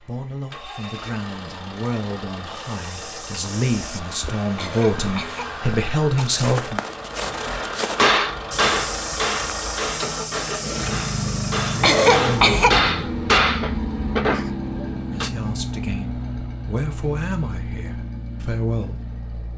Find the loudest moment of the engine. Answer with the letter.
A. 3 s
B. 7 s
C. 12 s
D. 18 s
C.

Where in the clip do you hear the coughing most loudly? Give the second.
12 s.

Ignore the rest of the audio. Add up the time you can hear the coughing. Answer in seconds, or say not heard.
3 s.